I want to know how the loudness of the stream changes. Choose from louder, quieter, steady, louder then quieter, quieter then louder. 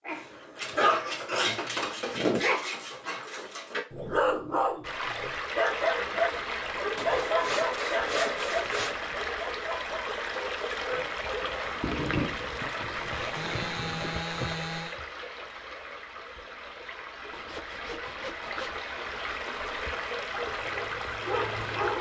quieter then louder.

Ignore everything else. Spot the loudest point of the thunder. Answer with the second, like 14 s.
12 s.